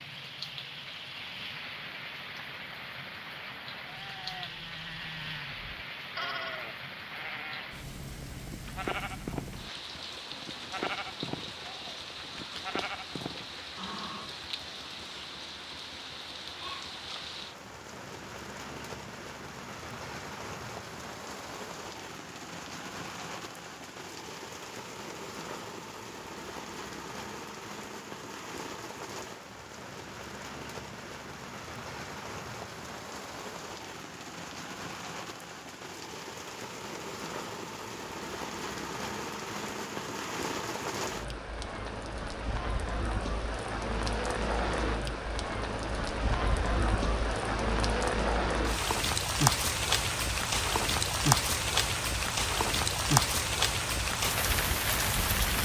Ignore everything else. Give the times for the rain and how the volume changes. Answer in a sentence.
The rain can be heard from 0.0 to 55.6 s, getting louder.